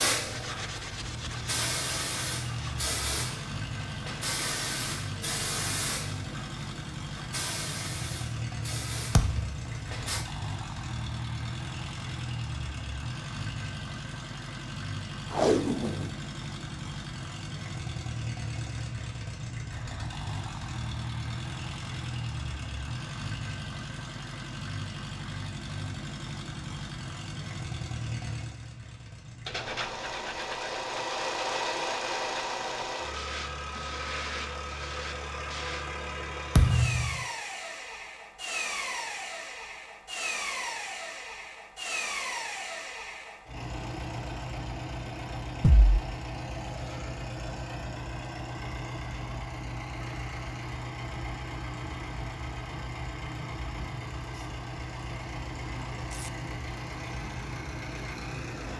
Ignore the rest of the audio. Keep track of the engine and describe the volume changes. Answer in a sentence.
The volume of the engine stays about the same.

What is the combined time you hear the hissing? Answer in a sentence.
The hissing can be heard for 10 seconds in total.